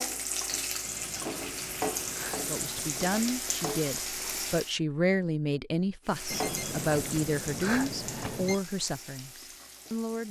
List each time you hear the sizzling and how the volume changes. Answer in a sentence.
You can hear the sizzling from 0.0 to 4.8 s, at a steady volume; and from 6.0 to 10.2 s, getting quieter.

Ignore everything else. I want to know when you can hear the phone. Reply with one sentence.
The phone can be heard from 0.8 to 3.1 s and from 6.3 to 8.6 s.